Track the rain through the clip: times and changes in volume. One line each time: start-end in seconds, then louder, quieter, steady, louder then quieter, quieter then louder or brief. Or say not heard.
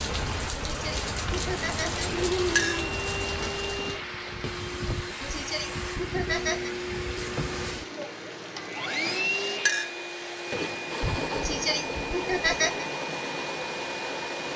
0.0-8.9 quieter.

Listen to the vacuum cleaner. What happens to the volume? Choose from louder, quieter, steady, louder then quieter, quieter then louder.
steady.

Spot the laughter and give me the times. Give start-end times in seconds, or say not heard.
0.4-3.0, 4.8-6.8, 11.0-12.8.